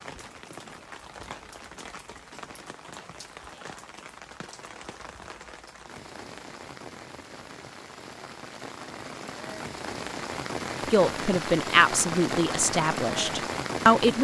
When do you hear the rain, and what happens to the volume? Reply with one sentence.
The rain can be heard from 0.0 to 14.1 s, getting louder.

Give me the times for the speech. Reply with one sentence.
You can hear the speech from 10.9 to 14.1 s.